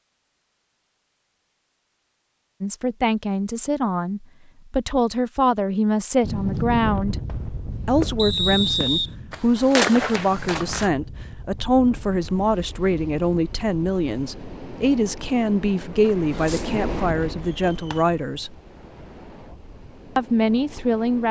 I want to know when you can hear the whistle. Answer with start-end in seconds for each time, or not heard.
8.2-9.1.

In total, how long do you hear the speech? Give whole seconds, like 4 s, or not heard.
16 s.